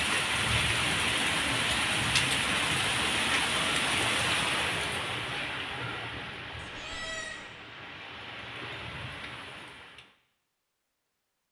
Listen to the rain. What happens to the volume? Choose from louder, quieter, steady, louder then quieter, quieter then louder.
quieter.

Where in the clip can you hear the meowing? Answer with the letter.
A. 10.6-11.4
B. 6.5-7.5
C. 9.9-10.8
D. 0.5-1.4
B.